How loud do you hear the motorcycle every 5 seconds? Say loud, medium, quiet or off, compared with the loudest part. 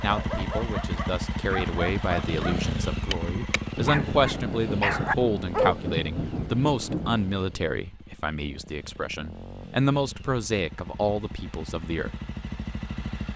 loud, medium, medium.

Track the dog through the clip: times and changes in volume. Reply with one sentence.
You can hear the dog from 0.0 to 5.8 s, getting louder.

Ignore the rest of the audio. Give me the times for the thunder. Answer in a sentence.
You can hear the thunder from 3.8 to 7.5 s.